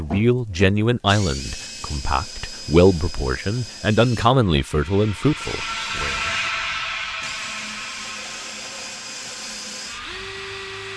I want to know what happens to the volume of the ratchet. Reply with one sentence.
The volume of the ratchet goes up, then down.